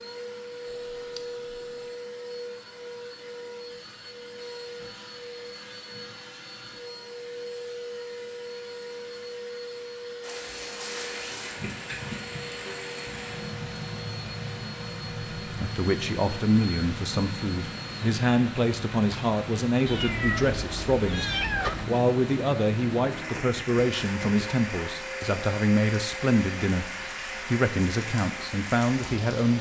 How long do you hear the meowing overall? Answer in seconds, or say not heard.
3 s.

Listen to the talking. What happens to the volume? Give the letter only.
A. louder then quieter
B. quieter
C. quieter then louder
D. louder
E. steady
E.